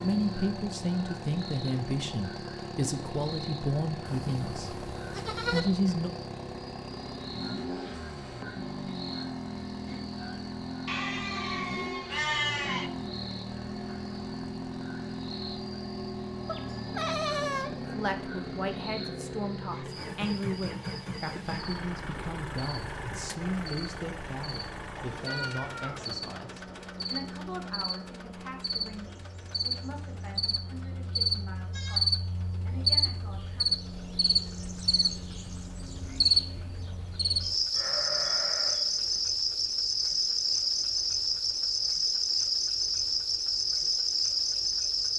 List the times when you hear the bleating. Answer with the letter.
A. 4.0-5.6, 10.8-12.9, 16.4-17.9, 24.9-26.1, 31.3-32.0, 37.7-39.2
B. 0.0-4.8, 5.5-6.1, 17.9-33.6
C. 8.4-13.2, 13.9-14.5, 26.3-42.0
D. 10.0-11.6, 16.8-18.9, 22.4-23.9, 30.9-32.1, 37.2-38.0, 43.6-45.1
A.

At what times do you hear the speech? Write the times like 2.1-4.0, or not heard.
0.0-4.8, 5.5-6.1, 17.9-33.6.